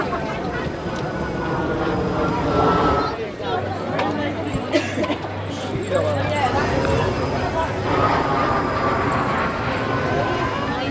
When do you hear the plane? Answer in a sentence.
You can hear the plane from 0.0 to 3.2 s and from 6.3 to 10.8 s.